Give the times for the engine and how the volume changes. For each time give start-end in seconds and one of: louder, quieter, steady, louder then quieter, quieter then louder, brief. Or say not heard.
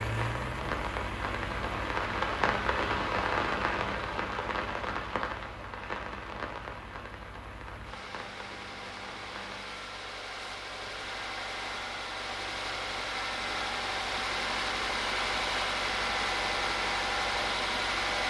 0.0-18.2 quieter then louder.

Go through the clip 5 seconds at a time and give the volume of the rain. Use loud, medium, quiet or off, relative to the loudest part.
loud, medium, off, off.